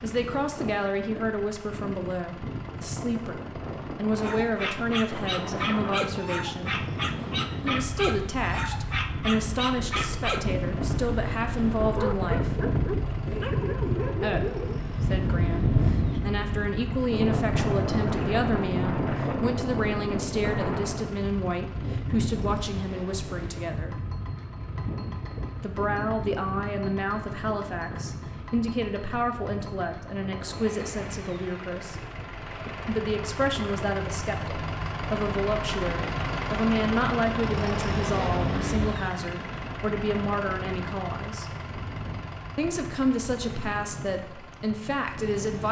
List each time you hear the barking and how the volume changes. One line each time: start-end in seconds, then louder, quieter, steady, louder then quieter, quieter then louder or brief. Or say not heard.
4.2-14.8 steady.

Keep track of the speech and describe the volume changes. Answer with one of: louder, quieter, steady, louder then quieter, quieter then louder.
steady.